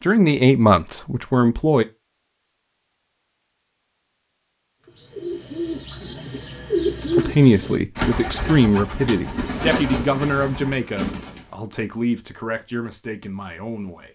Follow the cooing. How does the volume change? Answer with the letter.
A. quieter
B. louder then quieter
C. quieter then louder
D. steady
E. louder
B.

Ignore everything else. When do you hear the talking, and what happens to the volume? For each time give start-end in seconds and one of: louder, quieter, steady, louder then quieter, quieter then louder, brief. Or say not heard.
0.0-1.9 brief
7.2-14.1 quieter.